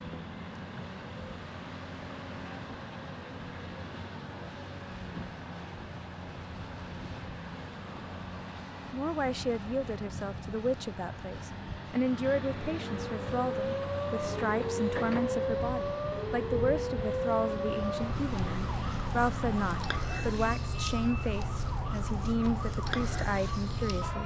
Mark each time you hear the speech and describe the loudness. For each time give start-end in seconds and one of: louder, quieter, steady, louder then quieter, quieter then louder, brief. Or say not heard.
8.9-24.2 steady.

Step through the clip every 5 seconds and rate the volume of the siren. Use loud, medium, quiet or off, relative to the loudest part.
off, off, loud, loud, loud.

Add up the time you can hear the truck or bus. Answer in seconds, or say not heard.
24 s.